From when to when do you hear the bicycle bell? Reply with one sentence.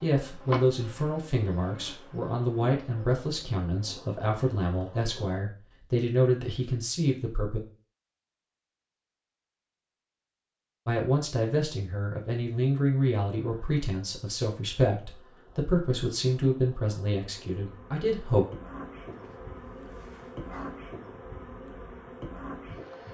You can't hear the bicycle bell here.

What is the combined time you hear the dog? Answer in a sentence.
You can hear the dog for 2 seconds altogether.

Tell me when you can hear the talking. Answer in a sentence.
You can hear the talking from 0.0 to 7.6 s and from 10.8 to 18.4 s.